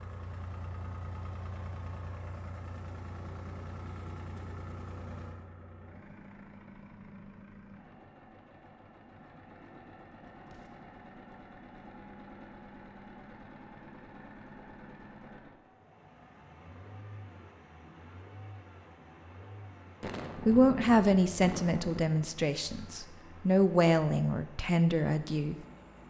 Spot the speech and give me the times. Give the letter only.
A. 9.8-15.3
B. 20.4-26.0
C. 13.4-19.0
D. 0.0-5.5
B.